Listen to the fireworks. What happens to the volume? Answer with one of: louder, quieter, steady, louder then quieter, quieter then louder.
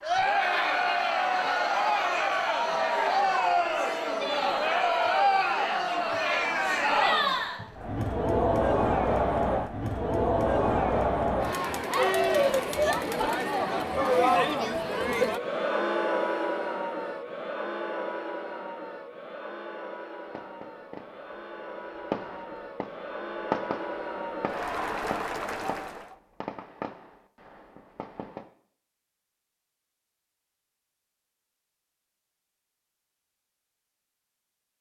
louder then quieter.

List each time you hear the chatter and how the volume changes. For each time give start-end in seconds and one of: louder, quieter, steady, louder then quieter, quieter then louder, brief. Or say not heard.
0.0-26.1 quieter.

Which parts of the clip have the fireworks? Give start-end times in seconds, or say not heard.
20.2-28.4.